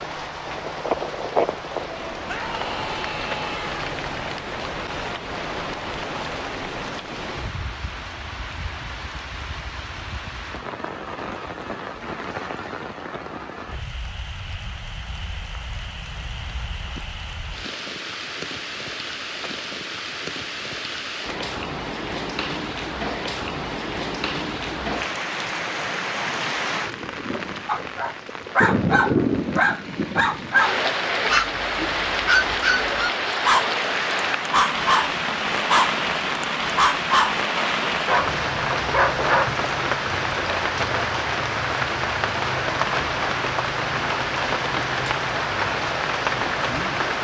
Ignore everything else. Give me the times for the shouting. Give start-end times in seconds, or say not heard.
2.2-3.9.